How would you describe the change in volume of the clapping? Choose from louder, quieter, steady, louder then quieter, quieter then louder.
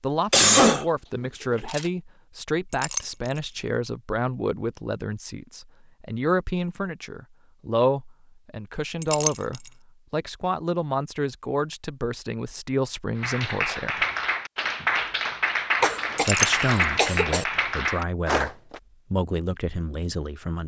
steady.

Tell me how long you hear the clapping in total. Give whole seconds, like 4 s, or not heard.
6 s.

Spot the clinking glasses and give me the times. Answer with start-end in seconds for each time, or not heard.
2.7-3.4, 9.0-9.7, 16.1-16.9.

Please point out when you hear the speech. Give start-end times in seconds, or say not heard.
0.0-14.1, 16.2-20.6.